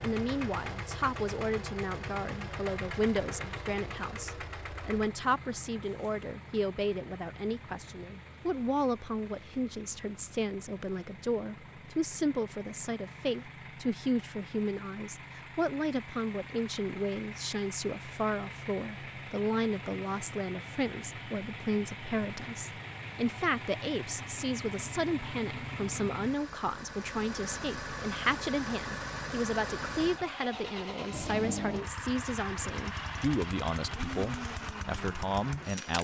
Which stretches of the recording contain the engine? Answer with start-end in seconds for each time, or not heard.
0.0-35.9.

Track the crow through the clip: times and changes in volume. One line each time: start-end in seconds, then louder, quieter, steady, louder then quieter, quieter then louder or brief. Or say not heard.
not heard.